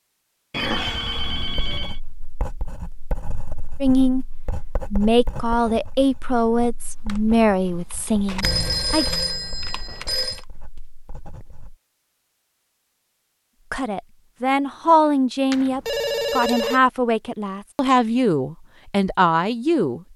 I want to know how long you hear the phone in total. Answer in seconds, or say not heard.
5 s.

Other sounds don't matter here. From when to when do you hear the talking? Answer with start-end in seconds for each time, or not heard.
3.8-4.2, 4.9-9.1, 13.7-20.1.